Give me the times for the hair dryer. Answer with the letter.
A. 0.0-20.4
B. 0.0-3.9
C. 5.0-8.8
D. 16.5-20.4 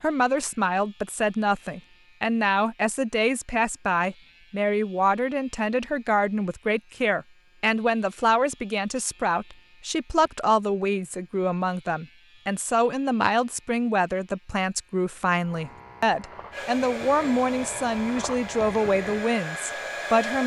D.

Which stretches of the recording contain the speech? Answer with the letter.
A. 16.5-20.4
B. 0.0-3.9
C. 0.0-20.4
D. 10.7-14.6
C.